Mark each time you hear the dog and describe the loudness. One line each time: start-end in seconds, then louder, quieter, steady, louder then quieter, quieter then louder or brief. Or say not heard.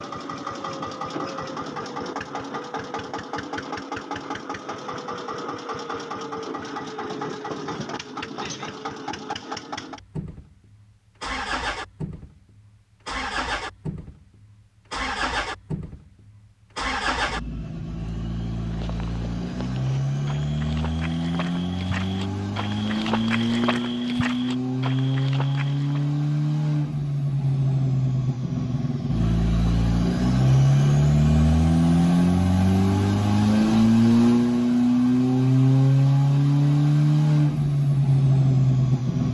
not heard.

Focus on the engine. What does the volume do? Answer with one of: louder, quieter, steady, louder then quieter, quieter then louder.
louder.